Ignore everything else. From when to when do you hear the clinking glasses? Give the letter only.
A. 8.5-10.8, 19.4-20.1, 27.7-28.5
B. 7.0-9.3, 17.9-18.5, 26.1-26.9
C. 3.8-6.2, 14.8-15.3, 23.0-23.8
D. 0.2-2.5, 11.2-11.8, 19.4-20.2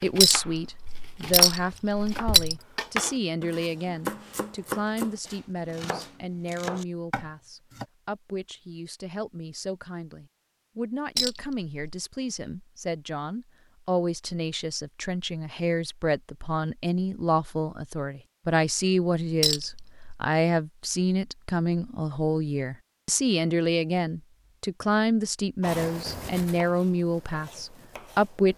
D.